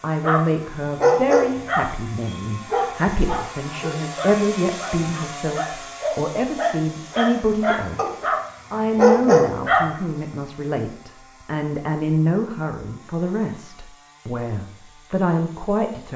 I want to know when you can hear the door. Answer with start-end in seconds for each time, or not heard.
not heard.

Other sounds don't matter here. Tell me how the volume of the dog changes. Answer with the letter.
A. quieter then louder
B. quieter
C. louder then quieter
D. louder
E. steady
A.